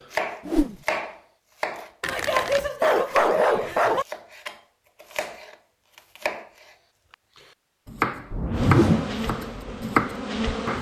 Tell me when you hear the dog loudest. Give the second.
3 s.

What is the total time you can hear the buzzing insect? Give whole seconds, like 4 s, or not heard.
2 s.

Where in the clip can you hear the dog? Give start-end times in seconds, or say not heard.
2.0-4.0.